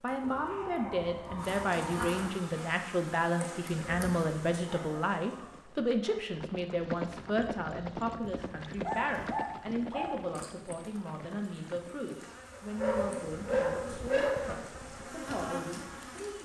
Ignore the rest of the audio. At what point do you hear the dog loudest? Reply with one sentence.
The volume of the dog peaks at 14 seconds.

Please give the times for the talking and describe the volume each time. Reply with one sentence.
You can hear the talking from 0.0 to 16.3 s, getting quieter.